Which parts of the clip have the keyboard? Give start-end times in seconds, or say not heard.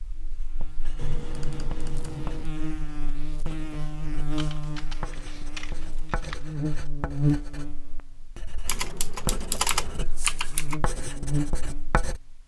0.9-2.5, 4.3-6.4, 8.7-10.8.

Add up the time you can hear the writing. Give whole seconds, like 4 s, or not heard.
12 s.